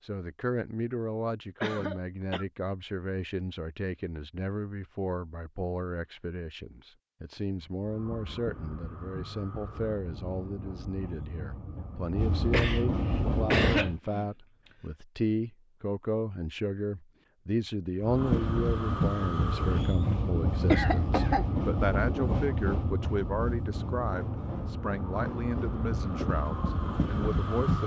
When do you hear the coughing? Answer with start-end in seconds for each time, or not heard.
1.6-2.5, 12.5-14.2, 20.7-21.4.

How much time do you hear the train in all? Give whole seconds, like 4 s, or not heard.
16 s.